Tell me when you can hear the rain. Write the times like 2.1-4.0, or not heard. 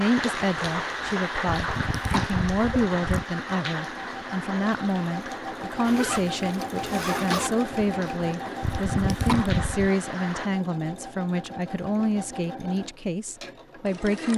0.0-10.5.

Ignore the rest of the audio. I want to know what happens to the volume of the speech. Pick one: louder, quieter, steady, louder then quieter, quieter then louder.
steady.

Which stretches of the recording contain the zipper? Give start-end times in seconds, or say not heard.
5.8-7.5.